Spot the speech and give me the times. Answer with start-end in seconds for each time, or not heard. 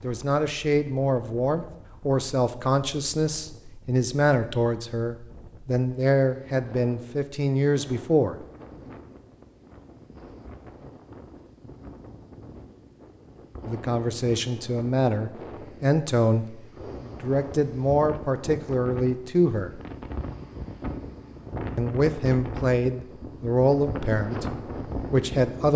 0.0-8.3, 13.7-19.8, 21.8-25.7.